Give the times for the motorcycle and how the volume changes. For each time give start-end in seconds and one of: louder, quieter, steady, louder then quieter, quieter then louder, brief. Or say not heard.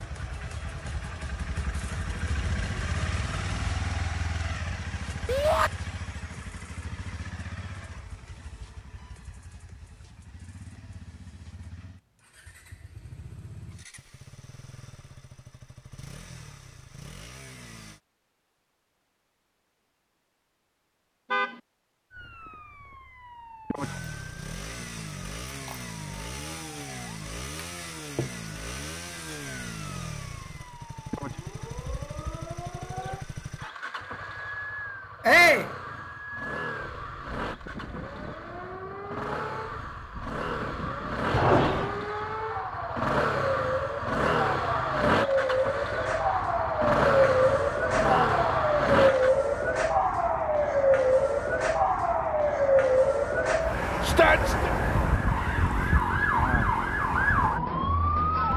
0.0-18.0 quieter
23.8-49.4 louder.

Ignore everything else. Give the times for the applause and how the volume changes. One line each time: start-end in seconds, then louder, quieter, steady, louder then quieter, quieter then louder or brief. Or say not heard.
not heard.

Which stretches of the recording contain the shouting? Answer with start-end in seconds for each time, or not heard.
5.2-5.7, 35.2-35.7, 54.0-54.7.